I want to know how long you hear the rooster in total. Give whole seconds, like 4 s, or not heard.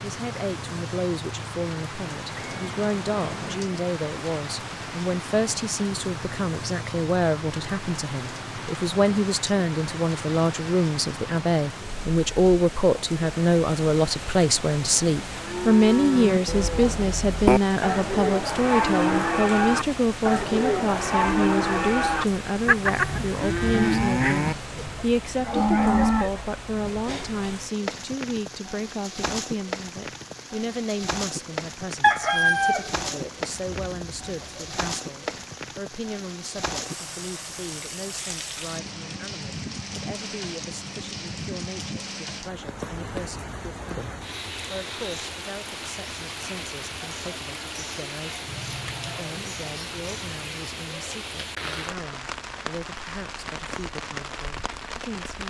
3 s.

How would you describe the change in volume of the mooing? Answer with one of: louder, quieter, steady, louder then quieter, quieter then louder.
steady.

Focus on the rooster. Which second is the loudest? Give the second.
32 s.